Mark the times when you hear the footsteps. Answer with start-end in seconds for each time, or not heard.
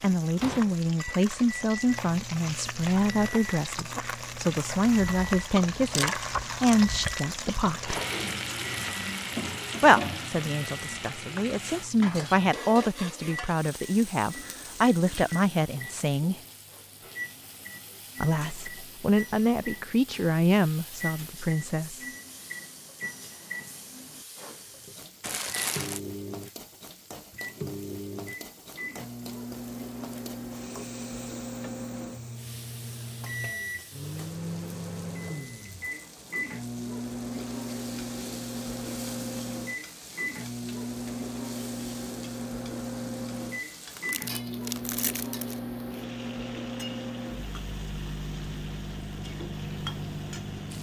not heard.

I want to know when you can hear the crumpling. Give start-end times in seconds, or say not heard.
5.8-7.2, 25.2-26.0, 43.9-45.6.